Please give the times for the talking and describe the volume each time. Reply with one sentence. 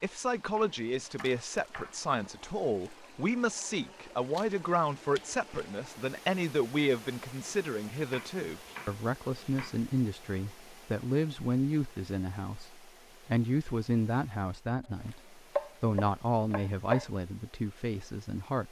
You can hear the talking from 0.0 to 18.6 s, at a steady volume.